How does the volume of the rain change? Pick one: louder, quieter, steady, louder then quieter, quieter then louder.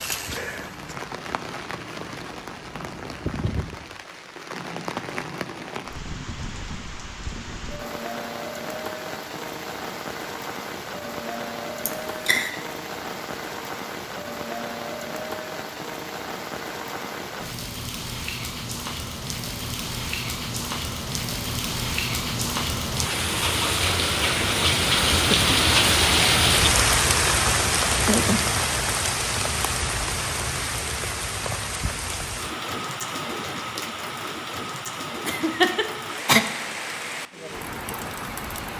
louder then quieter.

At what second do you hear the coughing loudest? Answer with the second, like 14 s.
36 s.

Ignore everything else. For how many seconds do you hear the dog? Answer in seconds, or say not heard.
not heard.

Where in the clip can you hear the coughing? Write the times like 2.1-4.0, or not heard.
11.8-12.5, 35.2-36.4.